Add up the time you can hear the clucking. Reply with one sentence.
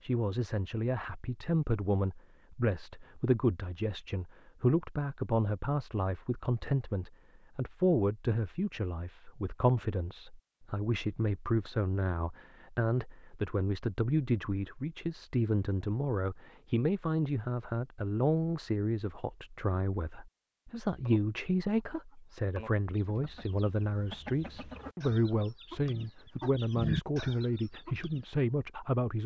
The clucking can be heard for 7 seconds in total.